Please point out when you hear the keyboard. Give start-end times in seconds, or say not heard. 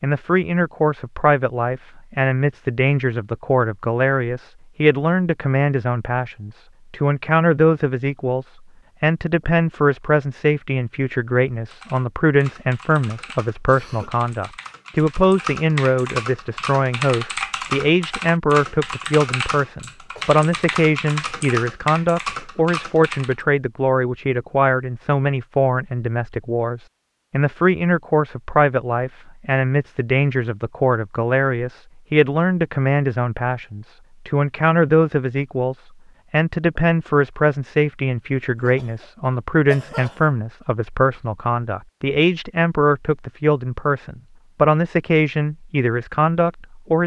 11.7-23.4.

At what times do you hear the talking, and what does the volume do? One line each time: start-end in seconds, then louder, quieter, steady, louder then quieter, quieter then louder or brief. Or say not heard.
0.0-47.0 steady.